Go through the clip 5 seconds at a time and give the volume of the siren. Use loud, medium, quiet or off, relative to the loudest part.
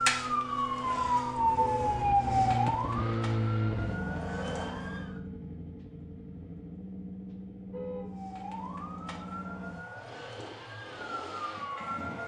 loud, quiet, medium.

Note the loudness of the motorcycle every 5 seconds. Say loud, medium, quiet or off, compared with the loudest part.
loud, medium, medium.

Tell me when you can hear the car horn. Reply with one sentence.
You can hear the car horn from 1.5 to 1.9 s and from 7.7 to 8.2 s.